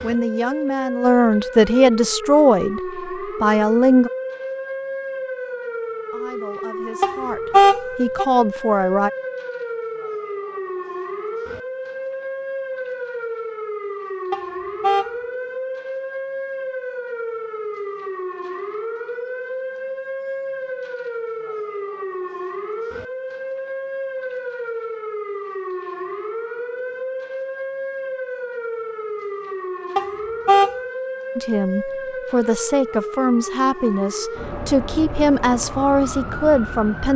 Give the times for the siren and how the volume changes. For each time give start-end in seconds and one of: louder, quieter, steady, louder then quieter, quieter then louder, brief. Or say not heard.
0.0-37.1 steady.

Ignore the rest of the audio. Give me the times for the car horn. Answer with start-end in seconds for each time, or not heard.
7.0-8.2, 14.3-15.1, 29.9-30.8.